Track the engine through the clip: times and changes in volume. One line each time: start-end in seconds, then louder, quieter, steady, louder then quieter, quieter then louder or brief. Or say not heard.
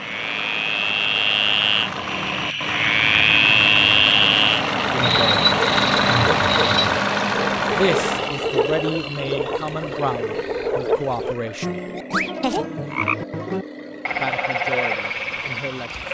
0.0-16.0 louder then quieter.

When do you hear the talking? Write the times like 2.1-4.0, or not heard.
4.9-5.5, 7.7-11.8, 14.2-16.0.